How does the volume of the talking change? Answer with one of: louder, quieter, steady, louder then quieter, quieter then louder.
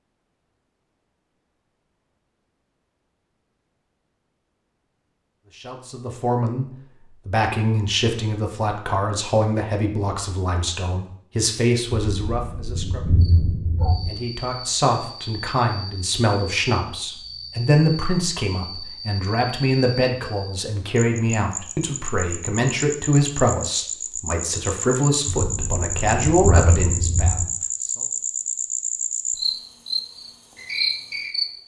steady.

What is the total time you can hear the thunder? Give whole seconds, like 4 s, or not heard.
4 s.